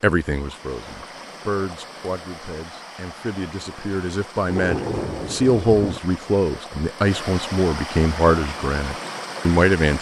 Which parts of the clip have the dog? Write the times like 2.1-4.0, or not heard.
not heard.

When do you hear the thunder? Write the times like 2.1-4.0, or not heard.
4.5-6.0.